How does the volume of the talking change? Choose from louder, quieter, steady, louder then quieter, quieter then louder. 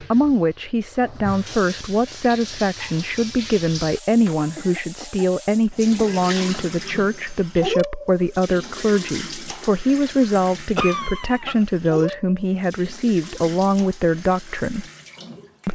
steady.